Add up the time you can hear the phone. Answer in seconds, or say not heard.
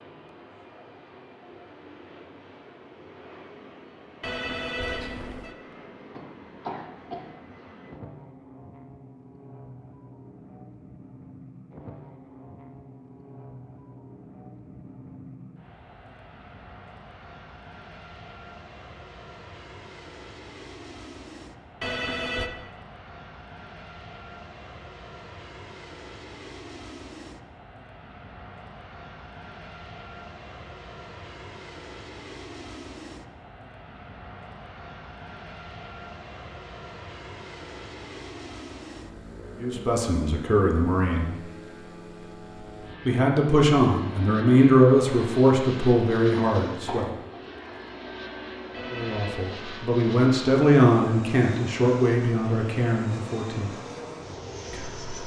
3 s.